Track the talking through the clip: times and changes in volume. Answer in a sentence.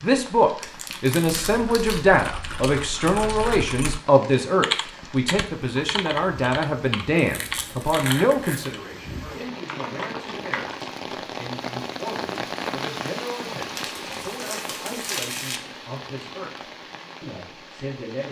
You can hear the talking from 0.0 to 16.5 s, getting quieter; and briefly from 17.2 to 18.2 s.